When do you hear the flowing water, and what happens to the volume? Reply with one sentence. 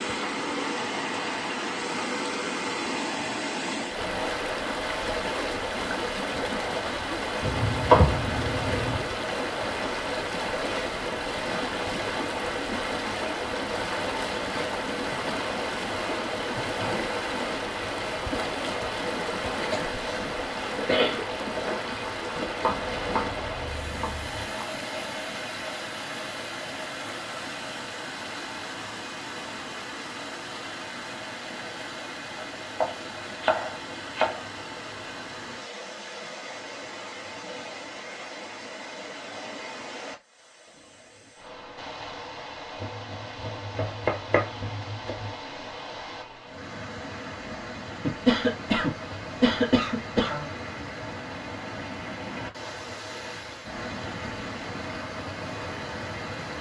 The flowing water can be heard from 0.0 to 56.5 s, getting quieter.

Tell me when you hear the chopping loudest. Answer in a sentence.
The loudest moment of the chopping is at 8 seconds.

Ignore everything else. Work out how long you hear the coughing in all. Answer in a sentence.
You can hear the coughing for 4 seconds altogether.